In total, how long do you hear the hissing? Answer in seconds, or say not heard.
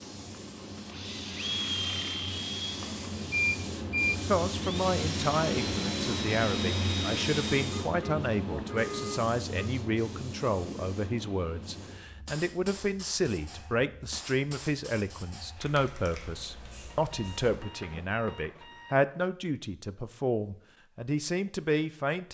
18 s.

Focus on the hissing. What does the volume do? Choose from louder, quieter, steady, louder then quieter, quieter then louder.
louder then quieter.